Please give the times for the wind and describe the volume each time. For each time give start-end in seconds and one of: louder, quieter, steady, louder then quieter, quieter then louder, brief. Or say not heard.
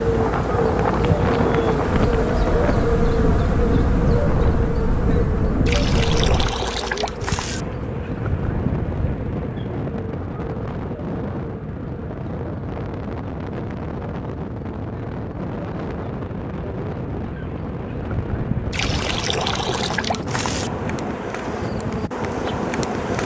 0.0-23.2 quieter.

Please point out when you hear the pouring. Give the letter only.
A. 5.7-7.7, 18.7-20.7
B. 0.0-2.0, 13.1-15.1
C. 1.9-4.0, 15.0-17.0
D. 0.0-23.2
A.